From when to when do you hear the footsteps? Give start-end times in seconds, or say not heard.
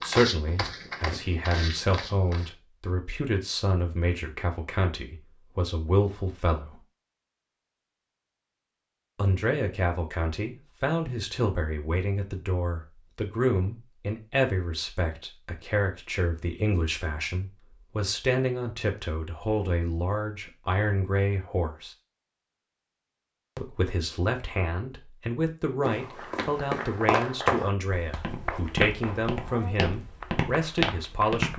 0.0-2.5, 25.8-31.5.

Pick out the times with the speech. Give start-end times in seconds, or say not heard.
0.0-6.8, 9.2-21.9, 23.6-31.5.